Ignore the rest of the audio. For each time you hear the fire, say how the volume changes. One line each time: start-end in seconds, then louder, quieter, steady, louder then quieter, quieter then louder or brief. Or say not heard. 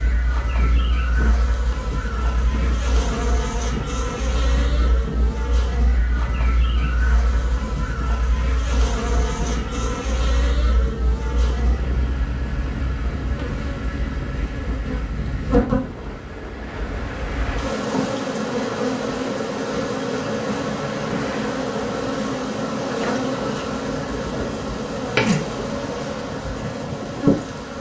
not heard.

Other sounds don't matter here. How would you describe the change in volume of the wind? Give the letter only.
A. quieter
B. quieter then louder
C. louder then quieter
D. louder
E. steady
E.